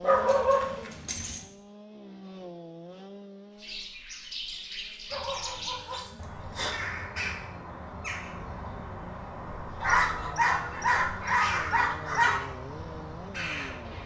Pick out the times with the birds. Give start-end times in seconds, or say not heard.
3.5-14.0.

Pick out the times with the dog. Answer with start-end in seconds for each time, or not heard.
0.0-1.4, 5.1-6.8, 9.8-12.4.